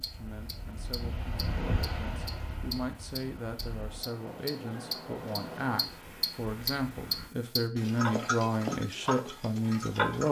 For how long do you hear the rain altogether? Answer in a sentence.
You can hear the rain for 7 seconds altogether.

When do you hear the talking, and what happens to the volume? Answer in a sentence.
The talking can be heard from 0.0 to 10.2 s, getting louder.